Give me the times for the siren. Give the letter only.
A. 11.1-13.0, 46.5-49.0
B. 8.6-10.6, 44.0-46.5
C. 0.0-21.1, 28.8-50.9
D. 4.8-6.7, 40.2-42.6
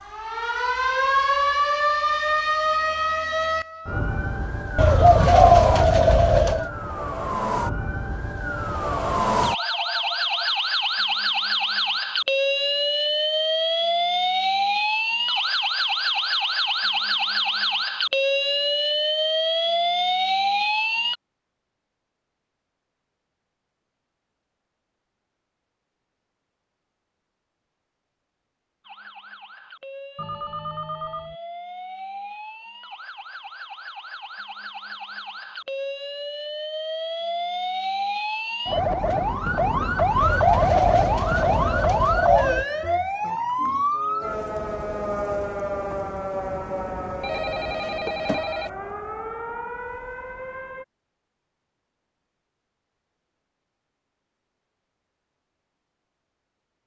C.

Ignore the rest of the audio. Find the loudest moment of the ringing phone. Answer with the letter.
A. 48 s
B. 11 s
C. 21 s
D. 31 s
A.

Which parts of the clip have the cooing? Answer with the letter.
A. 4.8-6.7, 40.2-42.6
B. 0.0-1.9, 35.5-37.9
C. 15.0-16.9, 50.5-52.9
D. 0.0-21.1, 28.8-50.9
A.